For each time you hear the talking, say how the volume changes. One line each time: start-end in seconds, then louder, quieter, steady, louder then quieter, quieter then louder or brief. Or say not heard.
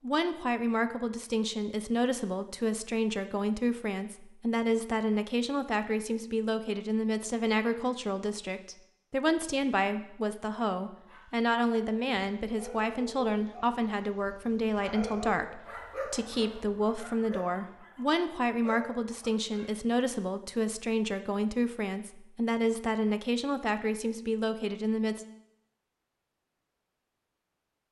0.0-25.2 steady.